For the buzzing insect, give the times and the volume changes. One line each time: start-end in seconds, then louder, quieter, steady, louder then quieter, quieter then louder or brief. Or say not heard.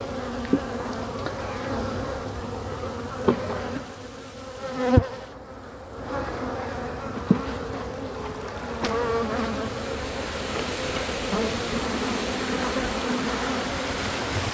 0.0-14.4 steady.